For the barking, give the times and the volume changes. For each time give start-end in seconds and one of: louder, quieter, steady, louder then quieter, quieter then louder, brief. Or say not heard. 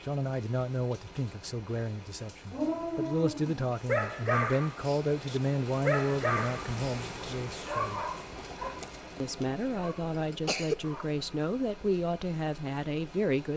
2.5-11.1 quieter.